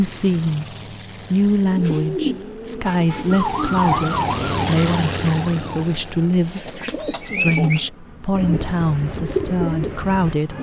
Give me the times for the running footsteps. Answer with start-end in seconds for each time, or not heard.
not heard.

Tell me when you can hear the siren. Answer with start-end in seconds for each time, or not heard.
3.3-5.8.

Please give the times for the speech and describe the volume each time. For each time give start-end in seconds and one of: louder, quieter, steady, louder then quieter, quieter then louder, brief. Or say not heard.
0.0-10.5 steady.